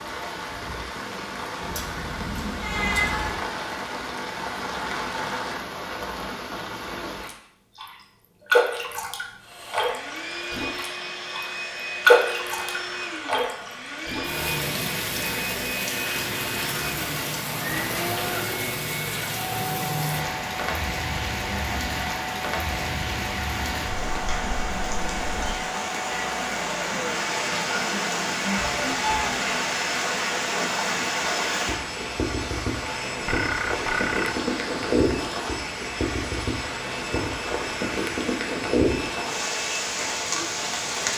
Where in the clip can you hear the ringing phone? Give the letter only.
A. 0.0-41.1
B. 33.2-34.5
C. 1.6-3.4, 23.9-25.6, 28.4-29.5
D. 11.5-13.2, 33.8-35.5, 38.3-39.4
B.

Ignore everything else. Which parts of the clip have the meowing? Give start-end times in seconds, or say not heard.
1.6-3.4, 23.9-25.6, 28.4-29.5.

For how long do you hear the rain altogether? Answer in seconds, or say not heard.
41 s.